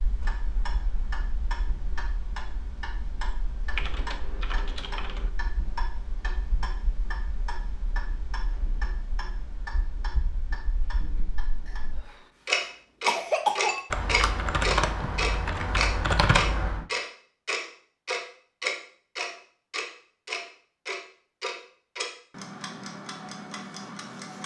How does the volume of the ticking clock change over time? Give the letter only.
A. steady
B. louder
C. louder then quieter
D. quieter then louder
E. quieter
C.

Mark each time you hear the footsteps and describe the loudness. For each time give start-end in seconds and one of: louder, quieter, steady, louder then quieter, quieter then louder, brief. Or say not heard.
not heard.